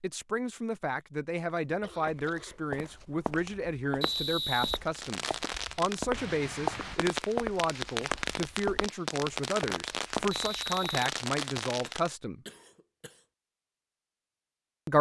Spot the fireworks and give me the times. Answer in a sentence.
The fireworks can be heard from 4.9 to 12.2 s.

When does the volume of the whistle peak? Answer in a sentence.
The volume of the whistle peaks at 4 seconds.